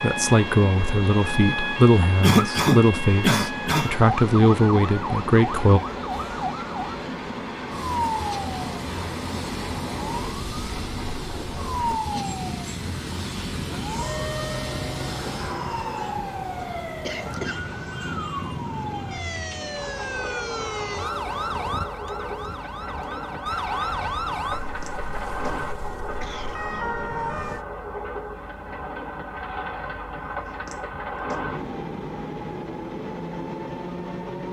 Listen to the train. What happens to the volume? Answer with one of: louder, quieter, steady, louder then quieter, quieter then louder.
steady.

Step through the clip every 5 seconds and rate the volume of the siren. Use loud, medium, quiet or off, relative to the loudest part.
loud, loud, loud, loud, loud, loud, off.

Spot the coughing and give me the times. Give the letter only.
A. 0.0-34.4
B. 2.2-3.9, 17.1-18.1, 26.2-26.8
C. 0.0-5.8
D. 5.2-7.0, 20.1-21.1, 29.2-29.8
B.